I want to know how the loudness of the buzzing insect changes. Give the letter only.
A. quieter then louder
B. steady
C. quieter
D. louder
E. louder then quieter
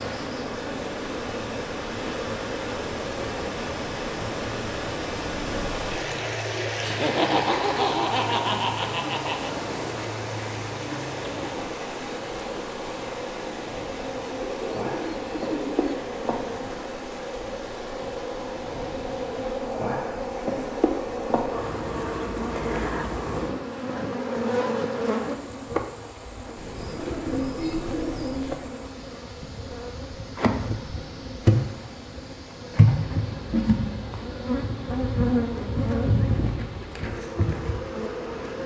D.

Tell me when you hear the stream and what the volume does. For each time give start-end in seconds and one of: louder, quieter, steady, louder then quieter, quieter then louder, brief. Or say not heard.
0.0-38.6 quieter.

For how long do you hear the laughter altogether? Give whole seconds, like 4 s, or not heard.
3 s.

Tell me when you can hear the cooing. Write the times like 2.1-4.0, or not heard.
14.6-16.1, 26.6-28.6.